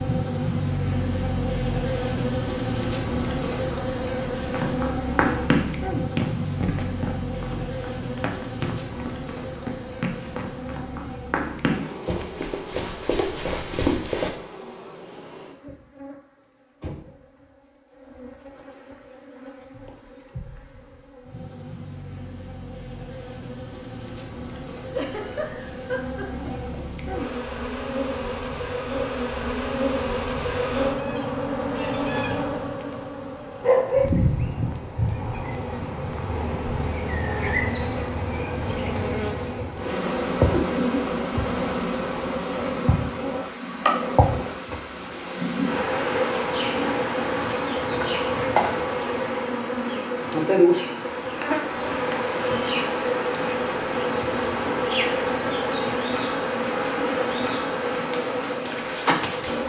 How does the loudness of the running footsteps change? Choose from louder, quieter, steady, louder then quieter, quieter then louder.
quieter then louder.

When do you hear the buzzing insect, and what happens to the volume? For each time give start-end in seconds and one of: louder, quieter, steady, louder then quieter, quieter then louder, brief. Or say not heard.
0.0-59.6 quieter then louder.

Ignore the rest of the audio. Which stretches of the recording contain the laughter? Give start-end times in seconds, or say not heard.
24.9-26.8, 40.5-41.1.